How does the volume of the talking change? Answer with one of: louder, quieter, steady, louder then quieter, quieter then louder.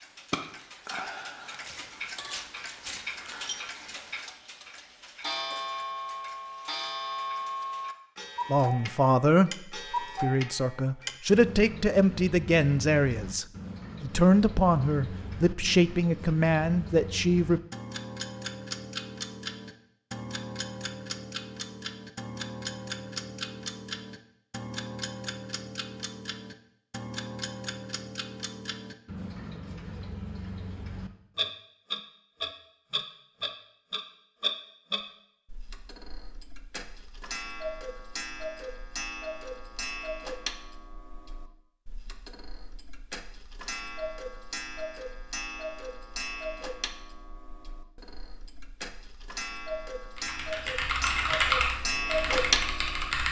steady.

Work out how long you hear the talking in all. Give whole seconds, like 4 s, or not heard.
9 s.